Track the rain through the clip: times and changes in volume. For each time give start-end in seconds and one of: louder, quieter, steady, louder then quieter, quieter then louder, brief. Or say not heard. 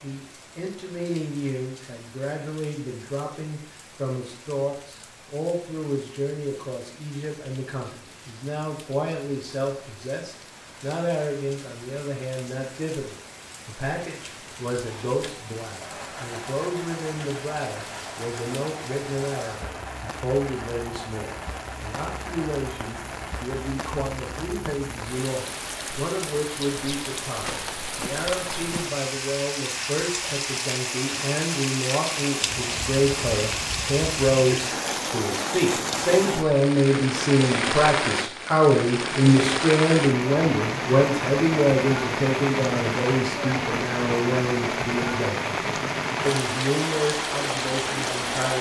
0.0-48.5 louder.